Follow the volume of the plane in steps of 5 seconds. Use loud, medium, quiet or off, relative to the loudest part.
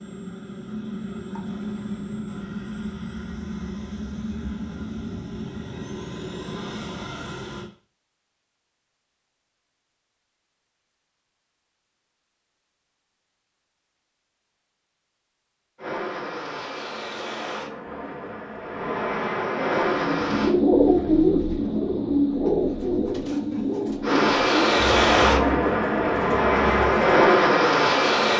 quiet, quiet, off, medium, loud, loud.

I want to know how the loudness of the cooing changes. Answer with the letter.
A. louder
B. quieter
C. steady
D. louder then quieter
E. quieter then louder
B.